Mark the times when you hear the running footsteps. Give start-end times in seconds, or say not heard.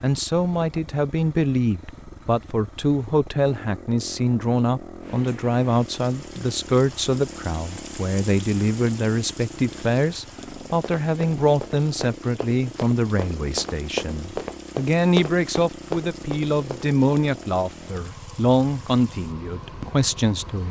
10.7-16.9.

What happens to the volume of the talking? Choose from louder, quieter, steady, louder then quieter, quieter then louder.
steady.